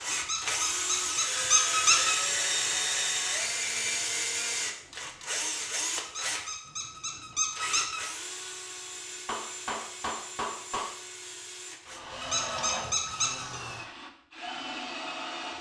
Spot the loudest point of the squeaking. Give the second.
2 s.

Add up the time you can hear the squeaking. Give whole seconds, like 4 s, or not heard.
5 s.